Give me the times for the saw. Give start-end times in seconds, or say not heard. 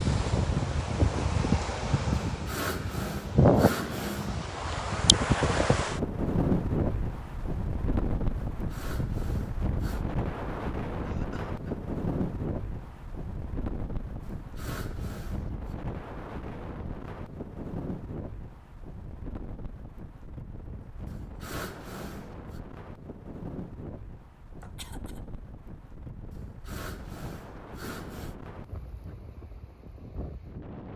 2.2-4.4, 8.6-10.1, 14.2-15.8, 21.1-22.6, 26.3-28.4.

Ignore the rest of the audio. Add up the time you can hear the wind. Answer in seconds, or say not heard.
31 s.